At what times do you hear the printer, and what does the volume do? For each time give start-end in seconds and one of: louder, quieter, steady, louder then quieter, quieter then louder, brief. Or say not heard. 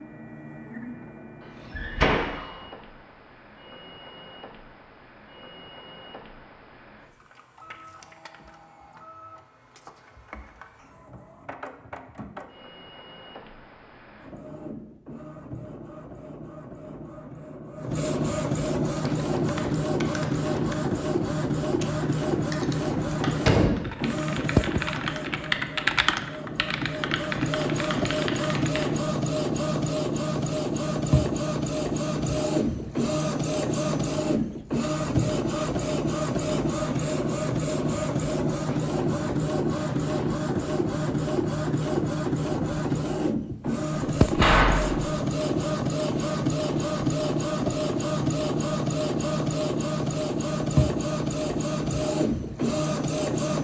0.0-53.5 louder.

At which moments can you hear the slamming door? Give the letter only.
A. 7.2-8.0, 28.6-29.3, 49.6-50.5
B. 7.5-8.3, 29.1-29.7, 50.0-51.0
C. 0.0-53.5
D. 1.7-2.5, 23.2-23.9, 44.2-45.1
D.